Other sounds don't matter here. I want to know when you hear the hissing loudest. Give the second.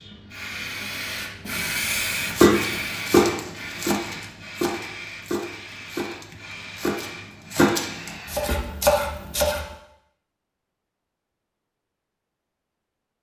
2 s.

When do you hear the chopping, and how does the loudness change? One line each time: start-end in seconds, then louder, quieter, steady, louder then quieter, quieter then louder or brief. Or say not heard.
2.3-9.6 quieter then louder.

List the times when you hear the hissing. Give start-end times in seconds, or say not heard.
0.0-8.6.